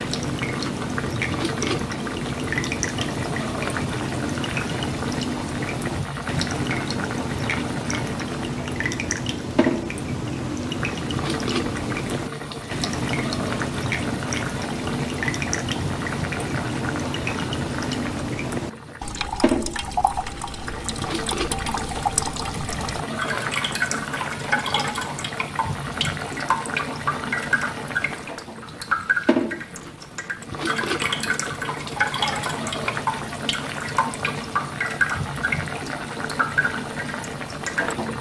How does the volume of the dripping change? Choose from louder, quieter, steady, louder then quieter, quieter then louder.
steady.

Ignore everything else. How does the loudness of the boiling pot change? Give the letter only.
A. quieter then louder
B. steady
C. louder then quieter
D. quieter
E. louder
B.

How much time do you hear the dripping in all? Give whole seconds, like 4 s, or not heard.
38 s.